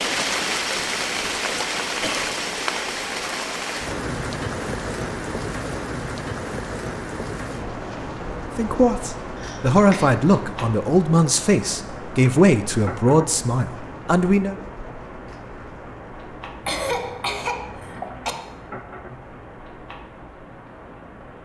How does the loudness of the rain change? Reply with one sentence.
The volume of the rain goes down.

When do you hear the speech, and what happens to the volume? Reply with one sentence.
You can hear the speech from 8.6 to 14.6 s, at a steady volume.